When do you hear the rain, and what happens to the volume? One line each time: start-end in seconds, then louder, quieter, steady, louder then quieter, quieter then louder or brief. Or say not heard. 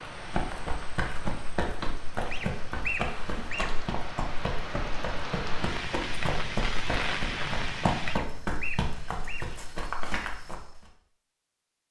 0.0-8.2 louder.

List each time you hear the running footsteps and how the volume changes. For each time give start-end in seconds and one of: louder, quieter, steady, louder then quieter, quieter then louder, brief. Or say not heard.
0.0-10.8 steady.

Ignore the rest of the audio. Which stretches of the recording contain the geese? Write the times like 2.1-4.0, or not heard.
2.3-3.7, 8.1-9.4.